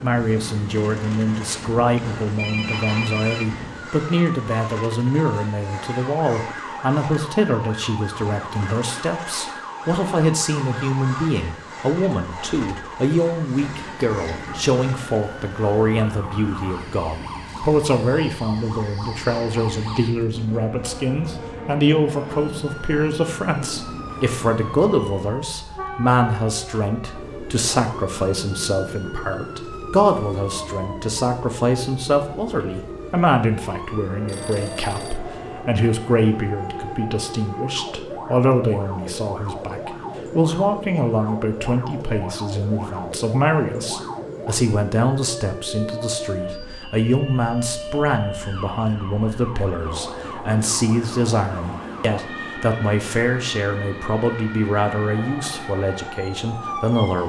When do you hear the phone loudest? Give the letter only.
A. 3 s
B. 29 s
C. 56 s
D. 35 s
A.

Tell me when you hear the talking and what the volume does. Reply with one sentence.
The talking can be heard from 0.0 to 57.2 s, at a steady volume.